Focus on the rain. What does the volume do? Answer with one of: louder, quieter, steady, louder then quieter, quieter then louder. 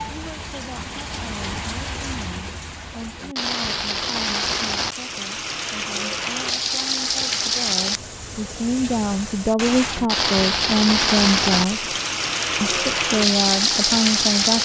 louder.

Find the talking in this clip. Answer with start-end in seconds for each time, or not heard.
0.0-11.9, 12.6-14.6.